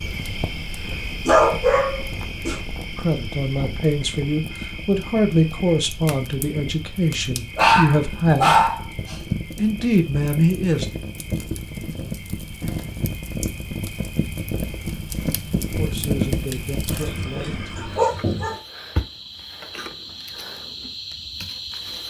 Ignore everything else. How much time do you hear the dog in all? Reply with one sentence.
You can hear the dog for 5 seconds altogether.